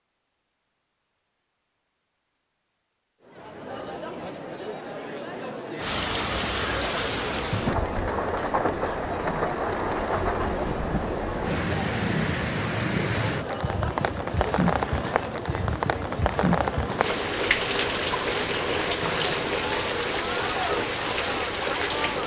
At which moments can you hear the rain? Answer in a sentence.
The rain can be heard from 5.8 to 22.2 s.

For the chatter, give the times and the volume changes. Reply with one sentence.
You can hear the chatter from 3.2 to 22.2 s, at a steady volume.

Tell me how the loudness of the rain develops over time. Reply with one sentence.
The volume of the rain stays about the same.